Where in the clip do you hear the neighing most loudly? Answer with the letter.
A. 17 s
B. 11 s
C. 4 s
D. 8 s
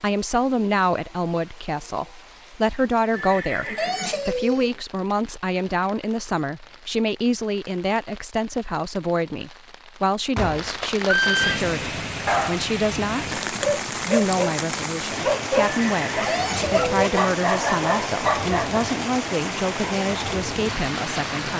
B.